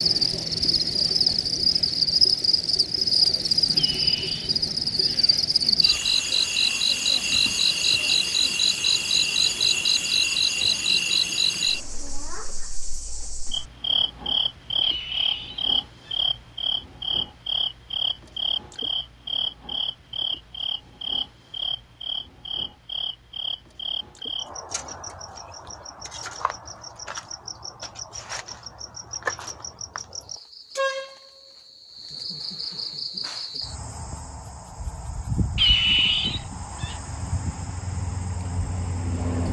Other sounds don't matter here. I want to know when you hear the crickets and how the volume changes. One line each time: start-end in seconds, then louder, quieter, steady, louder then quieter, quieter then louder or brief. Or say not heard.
0.0-39.4 quieter.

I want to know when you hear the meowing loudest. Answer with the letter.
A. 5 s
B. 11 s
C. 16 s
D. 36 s
D.